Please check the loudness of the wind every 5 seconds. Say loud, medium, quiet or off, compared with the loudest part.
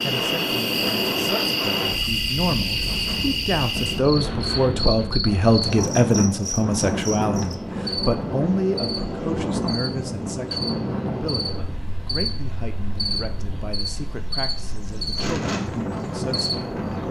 loud, loud, medium, loud.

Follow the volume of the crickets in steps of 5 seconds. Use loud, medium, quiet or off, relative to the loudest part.
loud, medium, medium, medium.